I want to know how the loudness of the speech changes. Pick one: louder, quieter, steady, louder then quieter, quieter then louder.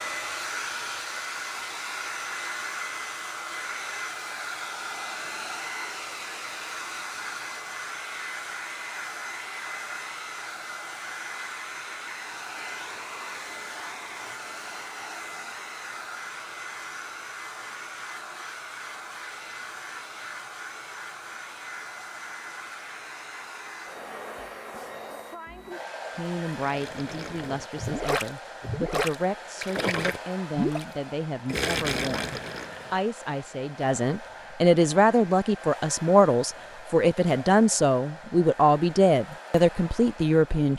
louder.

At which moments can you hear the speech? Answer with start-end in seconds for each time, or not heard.
26.1-40.7.